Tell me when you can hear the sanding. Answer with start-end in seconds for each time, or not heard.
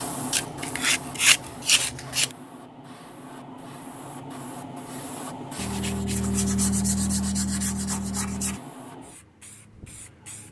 0.3-2.3, 5.5-8.6.